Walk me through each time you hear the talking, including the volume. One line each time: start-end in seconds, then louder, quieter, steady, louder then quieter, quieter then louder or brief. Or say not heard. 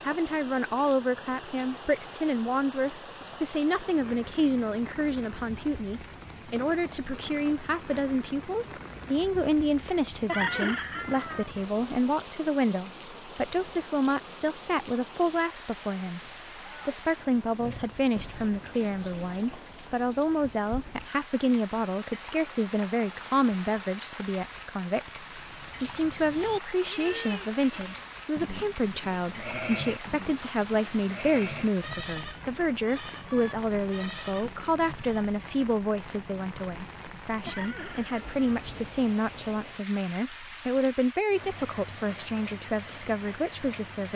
0.0-16.2 steady
16.9-44.1 steady.